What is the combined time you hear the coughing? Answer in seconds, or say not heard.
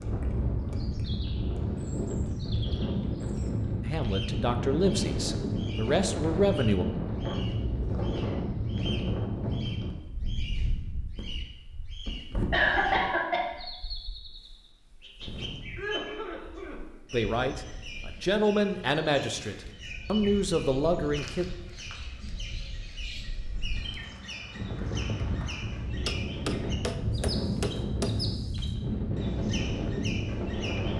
2 s.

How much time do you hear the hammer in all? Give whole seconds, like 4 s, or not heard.
2 s.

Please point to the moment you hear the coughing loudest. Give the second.
13 s.